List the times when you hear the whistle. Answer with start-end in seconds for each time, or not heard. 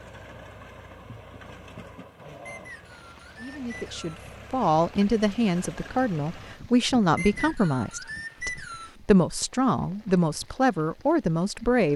2.5-4.1, 7.2-8.9.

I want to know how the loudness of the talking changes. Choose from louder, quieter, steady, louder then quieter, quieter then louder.
steady.